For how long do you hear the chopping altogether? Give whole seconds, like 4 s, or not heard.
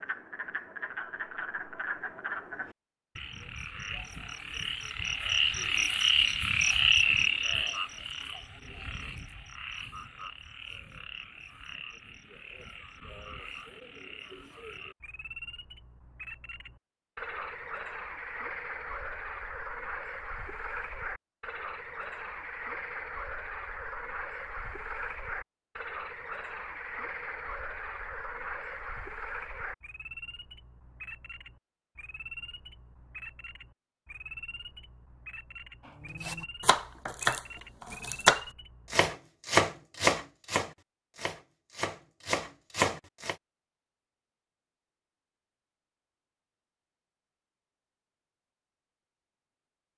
7 s.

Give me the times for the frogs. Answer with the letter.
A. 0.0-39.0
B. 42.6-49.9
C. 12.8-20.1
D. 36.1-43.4
A.